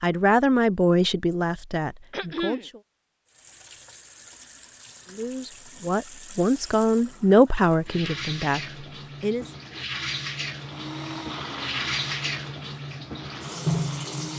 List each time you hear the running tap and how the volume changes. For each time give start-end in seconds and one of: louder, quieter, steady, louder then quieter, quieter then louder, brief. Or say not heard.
3.2-14.3 louder.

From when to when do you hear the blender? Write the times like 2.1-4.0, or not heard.
10.6-14.3.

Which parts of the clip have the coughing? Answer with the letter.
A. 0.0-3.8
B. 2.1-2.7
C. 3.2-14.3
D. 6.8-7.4
B.